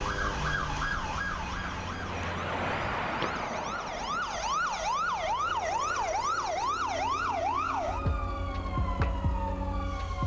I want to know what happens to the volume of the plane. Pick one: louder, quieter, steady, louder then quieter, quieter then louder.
louder then quieter.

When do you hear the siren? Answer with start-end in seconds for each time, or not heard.
0.0-10.2.